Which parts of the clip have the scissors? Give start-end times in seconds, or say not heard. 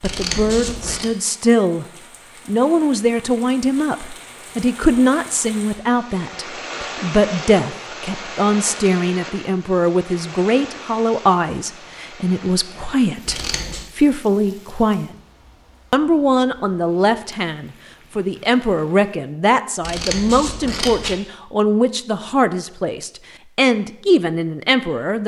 0.0-1.1, 13.2-13.9, 19.8-21.1.